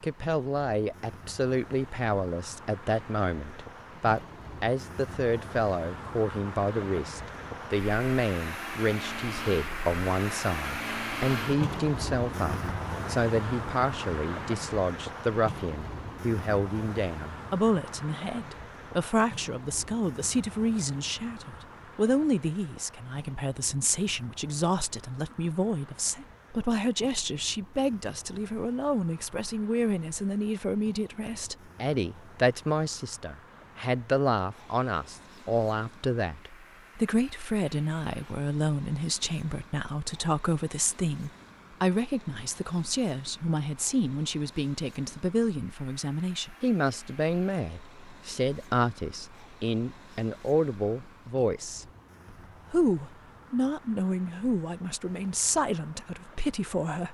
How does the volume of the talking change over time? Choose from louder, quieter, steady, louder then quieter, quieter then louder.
steady.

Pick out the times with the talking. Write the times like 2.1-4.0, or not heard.
0.0-51.9, 52.7-57.0.